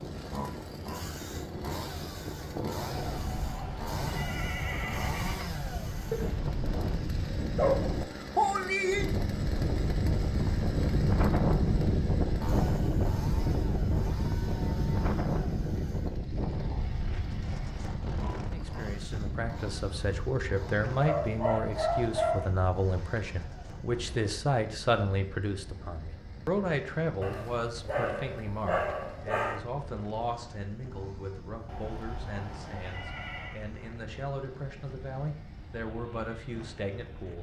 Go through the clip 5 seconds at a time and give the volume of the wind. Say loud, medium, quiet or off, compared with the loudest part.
medium, loud, loud, medium, quiet, quiet, quiet, quiet.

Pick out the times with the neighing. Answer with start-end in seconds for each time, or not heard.
2.9-5.5, 31.6-33.6.